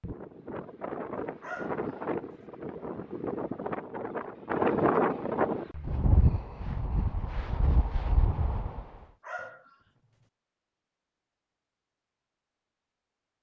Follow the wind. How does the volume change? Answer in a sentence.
The loudness of the wind goes up, then down.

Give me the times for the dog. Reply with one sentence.
You can hear the dog from 1.4 to 1.9 s and from 9.2 to 9.8 s.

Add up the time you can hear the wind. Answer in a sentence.
You can hear the wind for 9 seconds altogether.